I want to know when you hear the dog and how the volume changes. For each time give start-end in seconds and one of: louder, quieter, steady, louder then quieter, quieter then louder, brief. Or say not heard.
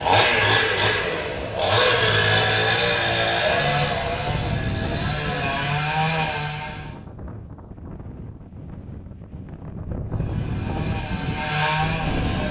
not heard.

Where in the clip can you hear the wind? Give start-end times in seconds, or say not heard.
0.0-12.4.